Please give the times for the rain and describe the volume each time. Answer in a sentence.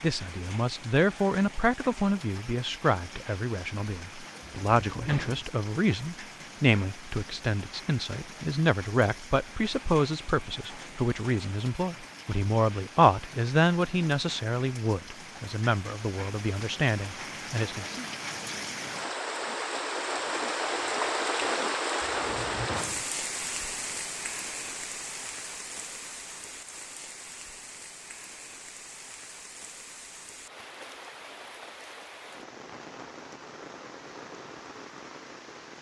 You can hear the rain from 0.0 to 35.7 s, getting louder then quieter.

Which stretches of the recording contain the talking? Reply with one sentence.
You can hear the talking from 0.0 to 18.1 s.